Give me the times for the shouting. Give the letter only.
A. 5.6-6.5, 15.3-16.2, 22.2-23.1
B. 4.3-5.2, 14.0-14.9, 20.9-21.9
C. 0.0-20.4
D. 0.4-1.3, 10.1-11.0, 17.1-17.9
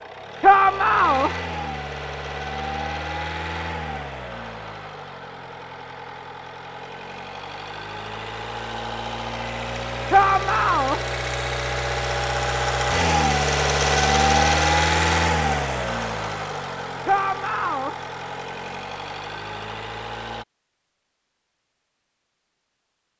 D.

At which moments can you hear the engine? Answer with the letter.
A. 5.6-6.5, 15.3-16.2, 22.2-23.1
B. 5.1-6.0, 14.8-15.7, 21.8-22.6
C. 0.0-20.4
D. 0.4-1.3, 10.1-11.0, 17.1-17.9
C.